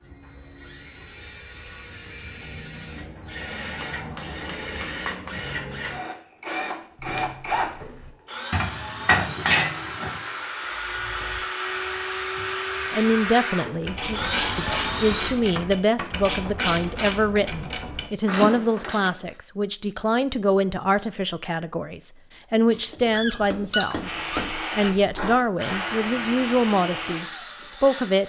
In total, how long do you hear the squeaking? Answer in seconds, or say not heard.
3 s.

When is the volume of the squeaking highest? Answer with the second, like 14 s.
24 s.